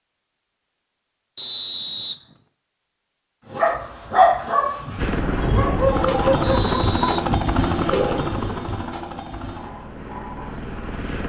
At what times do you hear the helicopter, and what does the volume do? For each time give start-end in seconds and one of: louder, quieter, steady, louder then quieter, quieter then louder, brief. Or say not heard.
5.0-11.2 quieter.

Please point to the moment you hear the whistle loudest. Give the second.
2 s.